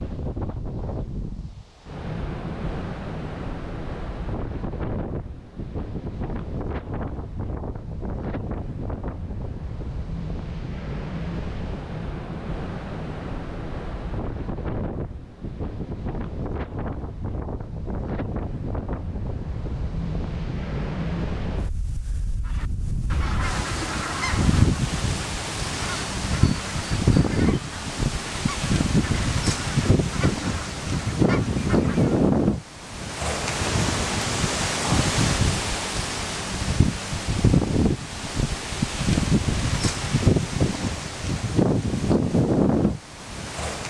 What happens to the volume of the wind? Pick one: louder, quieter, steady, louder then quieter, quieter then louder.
louder.